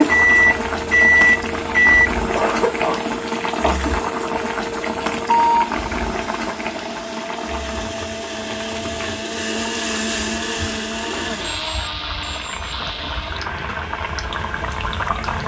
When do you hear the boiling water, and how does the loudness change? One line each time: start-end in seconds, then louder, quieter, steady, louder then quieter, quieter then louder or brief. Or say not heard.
0.0-15.4 quieter then louder.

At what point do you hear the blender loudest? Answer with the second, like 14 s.
10 s.